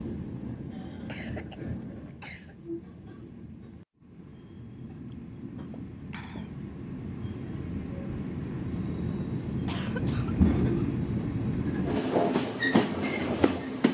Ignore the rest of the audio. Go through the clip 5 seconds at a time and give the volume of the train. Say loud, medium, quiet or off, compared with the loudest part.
quiet, medium, loud.